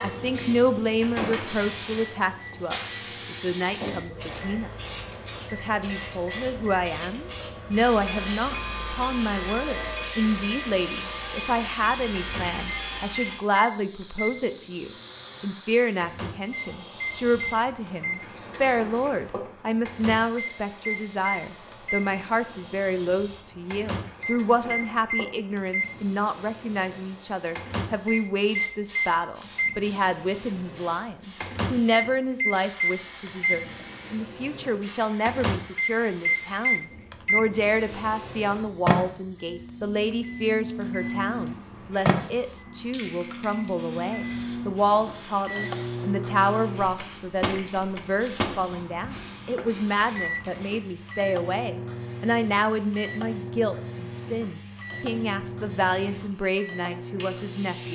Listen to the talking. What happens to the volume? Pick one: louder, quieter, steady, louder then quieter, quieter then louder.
steady.